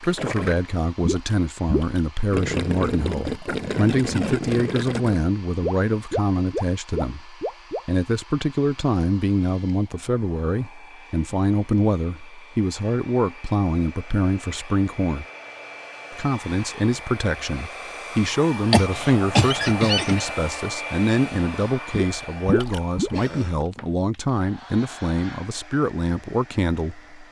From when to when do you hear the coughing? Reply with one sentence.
You can hear the coughing from 18.7 to 20.2 s.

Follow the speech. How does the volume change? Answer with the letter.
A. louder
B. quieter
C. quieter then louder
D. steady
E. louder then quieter
D.